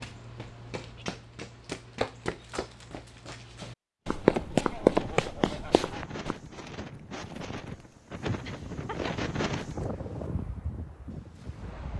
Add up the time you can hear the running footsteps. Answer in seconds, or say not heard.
6 s.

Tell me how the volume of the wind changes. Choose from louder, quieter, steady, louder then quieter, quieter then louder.
louder then quieter.